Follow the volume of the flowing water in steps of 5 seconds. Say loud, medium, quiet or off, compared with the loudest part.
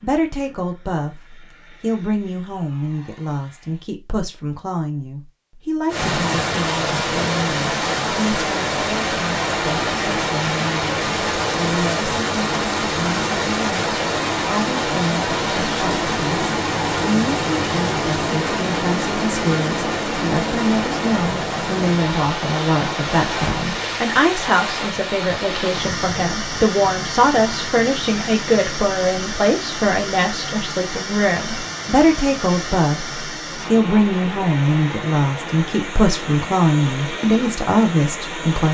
off, loud, loud, loud, loud, medium, medium, medium.